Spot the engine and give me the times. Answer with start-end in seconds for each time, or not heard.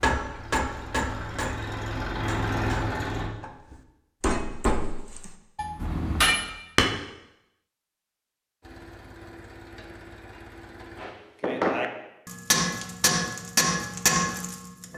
0.2-3.3, 8.6-11.1.